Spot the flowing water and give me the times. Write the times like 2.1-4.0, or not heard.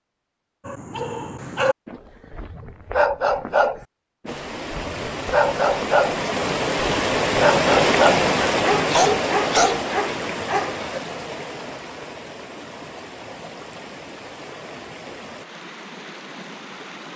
4.2-17.1.